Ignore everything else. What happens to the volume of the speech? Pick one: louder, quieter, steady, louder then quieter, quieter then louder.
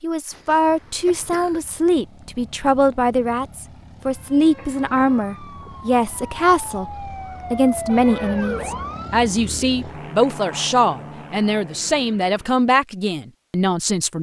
steady.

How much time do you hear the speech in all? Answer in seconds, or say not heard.
14 s.